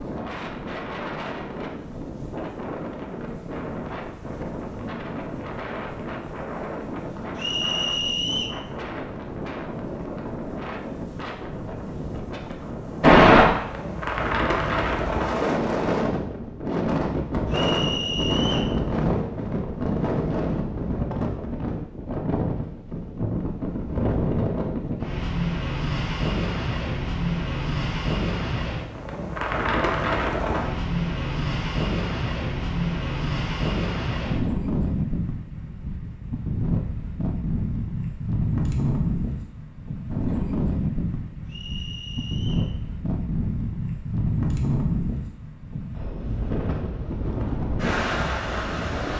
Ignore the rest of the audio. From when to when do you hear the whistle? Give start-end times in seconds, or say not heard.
7.3-8.6, 17.5-18.8, 41.5-42.7.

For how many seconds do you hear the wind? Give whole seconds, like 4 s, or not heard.
49 s.